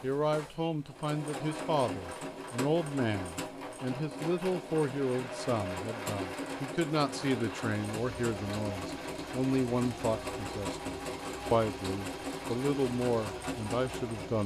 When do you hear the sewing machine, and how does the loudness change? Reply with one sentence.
The sewing machine can be heard from 0.0 to 14.4 s, at a steady volume.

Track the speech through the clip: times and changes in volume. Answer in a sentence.
You can hear the speech from 0.0 to 14.4 s, at a steady volume.